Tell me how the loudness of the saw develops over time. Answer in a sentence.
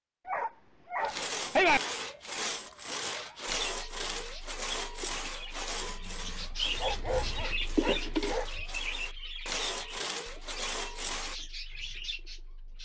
The loudness of the saw goes down, then up.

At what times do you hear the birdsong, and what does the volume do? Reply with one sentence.
The birdsong can be heard from 3.5 to 12.7 s, getting louder then quieter.